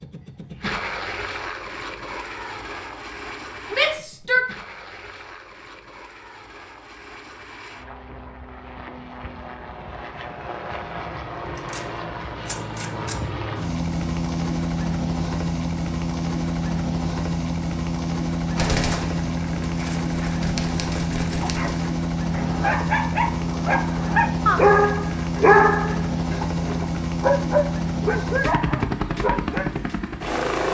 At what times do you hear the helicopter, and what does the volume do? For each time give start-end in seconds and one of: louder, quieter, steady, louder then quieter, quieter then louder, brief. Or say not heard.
0.0-30.6 louder.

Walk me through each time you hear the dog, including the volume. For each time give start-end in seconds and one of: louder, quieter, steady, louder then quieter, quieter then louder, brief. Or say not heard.
21.4-29.7 louder then quieter.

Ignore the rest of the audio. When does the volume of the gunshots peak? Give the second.
19 s.